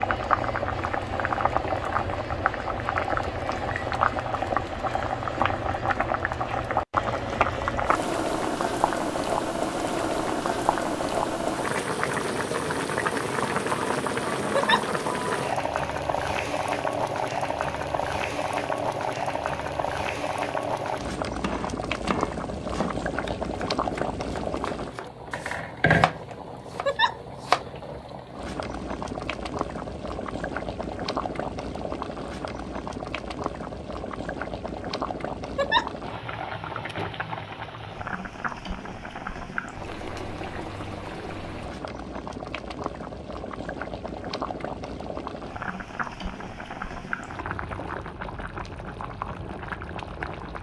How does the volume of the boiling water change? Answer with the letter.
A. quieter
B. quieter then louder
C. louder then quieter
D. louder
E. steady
A.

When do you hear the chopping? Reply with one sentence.
The chopping can be heard from 21.4 to 27.6 s.